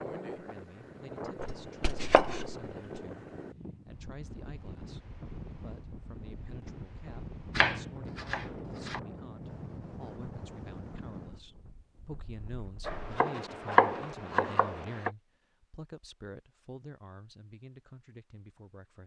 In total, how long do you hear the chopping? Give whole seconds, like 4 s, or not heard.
5 s.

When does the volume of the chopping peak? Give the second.
14 s.